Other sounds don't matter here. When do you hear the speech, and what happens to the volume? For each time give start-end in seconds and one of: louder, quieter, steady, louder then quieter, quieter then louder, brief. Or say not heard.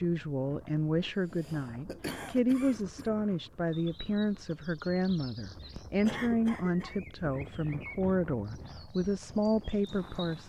0.0-10.4 steady.